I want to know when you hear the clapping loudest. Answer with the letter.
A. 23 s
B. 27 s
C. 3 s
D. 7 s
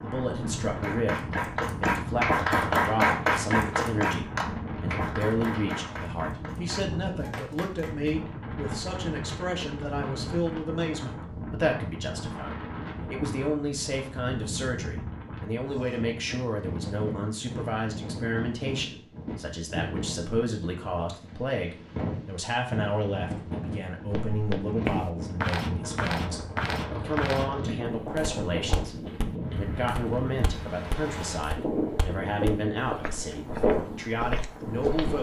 C.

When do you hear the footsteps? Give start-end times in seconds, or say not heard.
24.1-35.1.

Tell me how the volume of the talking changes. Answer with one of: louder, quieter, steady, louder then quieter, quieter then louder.
steady.